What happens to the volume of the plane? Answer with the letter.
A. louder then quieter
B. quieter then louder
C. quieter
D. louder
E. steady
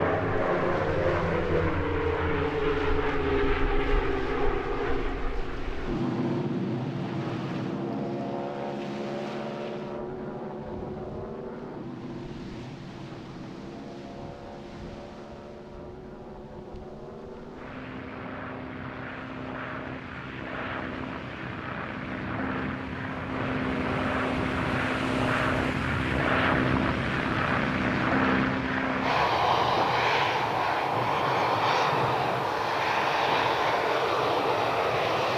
B.